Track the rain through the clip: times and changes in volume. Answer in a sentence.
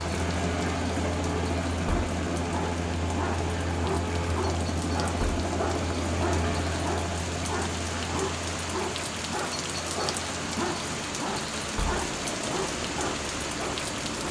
The rain can be heard from 0.0 to 14.2 s, getting louder.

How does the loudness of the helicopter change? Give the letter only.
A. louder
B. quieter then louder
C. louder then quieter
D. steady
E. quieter
E.